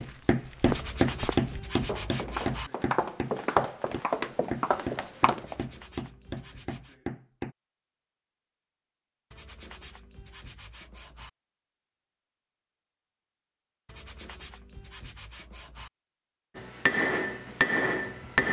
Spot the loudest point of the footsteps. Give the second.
3 s.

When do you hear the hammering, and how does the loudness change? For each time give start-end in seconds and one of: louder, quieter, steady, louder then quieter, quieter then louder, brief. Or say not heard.
0.0-7.5 quieter
16.6-18.4 brief.